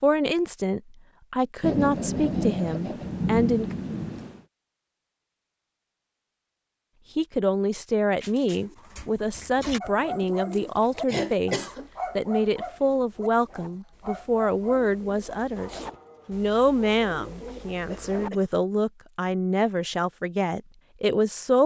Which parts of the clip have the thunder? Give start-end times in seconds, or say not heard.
1.6-4.4.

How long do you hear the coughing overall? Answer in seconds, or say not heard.
3 s.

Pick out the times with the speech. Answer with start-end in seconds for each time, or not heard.
0.0-3.8, 7.2-21.6.